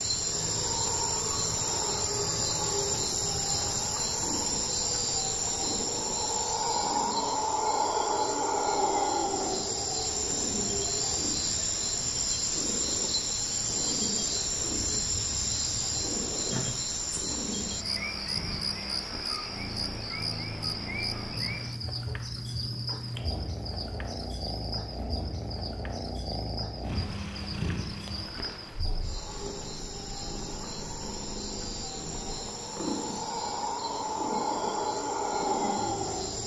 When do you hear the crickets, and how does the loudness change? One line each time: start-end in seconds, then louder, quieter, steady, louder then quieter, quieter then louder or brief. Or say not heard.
0.0-36.4 quieter then louder.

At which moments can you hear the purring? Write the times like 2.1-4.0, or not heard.
0.1-7.2, 9.3-36.4.